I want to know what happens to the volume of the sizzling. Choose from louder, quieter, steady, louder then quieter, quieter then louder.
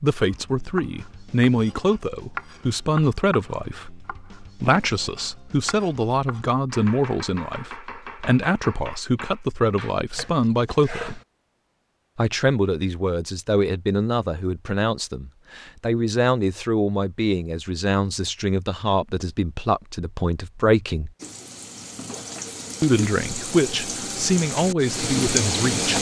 louder.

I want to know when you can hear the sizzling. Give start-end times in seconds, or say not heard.
21.1-25.9.